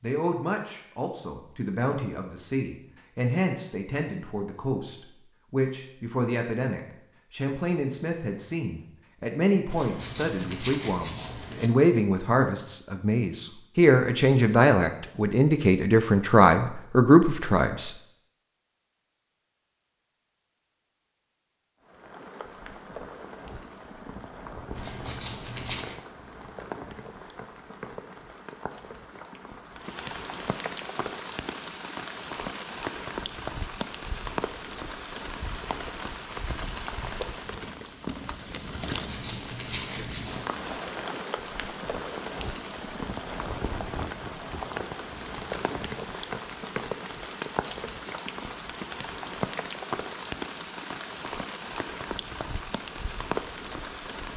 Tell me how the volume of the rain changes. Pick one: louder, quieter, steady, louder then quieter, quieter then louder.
louder.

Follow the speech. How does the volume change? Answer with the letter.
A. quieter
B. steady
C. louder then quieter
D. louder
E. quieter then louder
D.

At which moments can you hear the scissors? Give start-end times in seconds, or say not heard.
9.7-11.7, 24.8-26.0, 38.8-40.5.